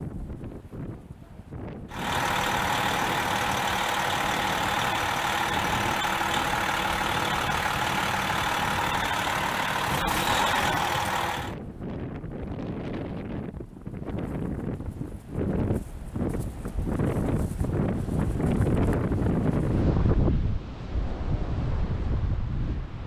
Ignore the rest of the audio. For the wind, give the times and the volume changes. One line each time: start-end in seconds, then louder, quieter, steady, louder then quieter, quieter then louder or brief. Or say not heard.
0.0-23.0 louder.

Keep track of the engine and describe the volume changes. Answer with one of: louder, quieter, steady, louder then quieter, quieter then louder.
steady.